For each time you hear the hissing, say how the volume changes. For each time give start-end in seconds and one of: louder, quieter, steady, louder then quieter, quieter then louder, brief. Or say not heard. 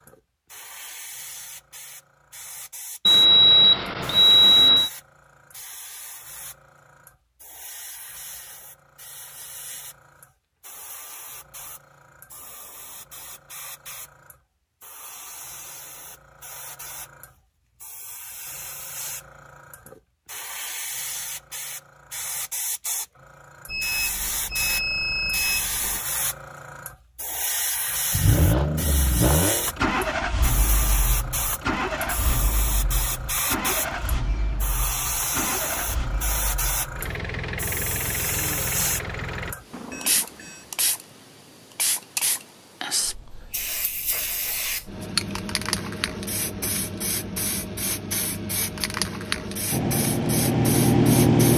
0.0-51.5 louder.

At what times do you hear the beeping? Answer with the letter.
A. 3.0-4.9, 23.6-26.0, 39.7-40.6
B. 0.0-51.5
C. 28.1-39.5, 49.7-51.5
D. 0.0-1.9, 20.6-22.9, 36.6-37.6
A.